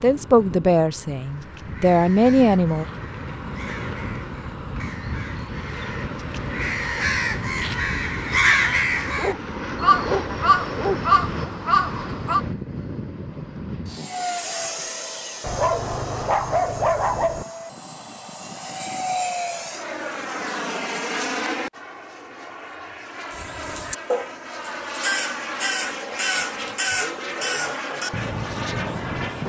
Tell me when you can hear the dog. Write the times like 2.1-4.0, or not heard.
9.1-11.5, 15.4-17.4.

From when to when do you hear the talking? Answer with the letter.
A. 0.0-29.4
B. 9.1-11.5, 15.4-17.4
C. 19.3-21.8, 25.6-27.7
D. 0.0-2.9
D.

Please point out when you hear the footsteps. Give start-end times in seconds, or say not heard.
not heard.